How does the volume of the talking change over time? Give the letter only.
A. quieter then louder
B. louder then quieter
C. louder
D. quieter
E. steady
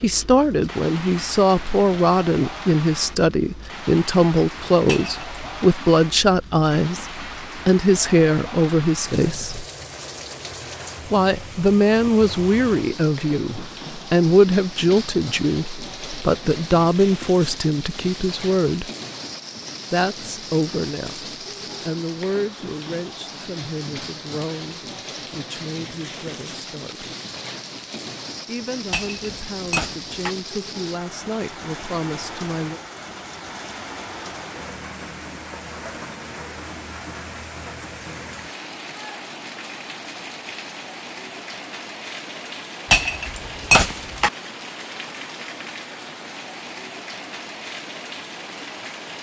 D.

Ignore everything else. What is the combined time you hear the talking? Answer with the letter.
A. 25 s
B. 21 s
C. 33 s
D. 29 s
D.